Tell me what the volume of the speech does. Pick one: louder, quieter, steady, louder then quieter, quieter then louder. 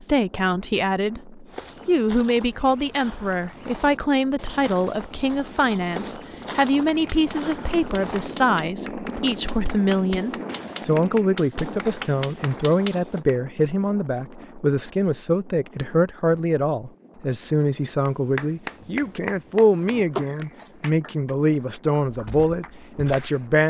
steady.